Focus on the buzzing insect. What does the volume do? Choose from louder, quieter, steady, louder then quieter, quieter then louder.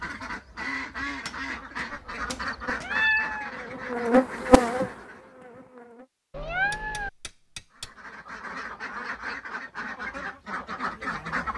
louder then quieter.